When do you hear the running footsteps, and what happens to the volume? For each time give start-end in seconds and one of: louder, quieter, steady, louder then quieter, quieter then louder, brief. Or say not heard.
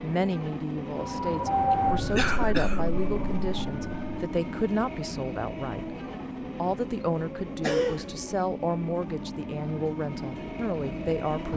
not heard.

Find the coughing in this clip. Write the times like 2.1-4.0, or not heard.
2.1-2.8, 7.6-8.1.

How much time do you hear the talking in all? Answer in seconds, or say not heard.
11 s.